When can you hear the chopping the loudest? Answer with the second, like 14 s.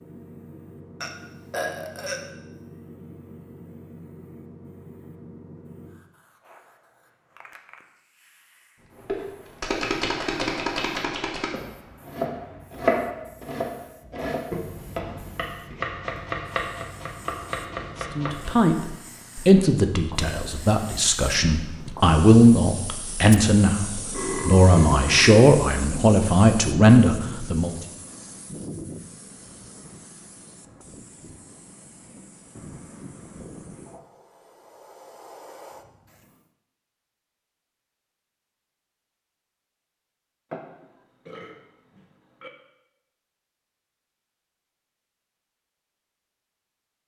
13 s.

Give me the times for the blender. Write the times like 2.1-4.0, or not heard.
not heard.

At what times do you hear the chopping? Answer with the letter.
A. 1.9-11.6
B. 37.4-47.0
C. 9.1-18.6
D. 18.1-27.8
C.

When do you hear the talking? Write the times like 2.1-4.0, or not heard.
18.1-27.8.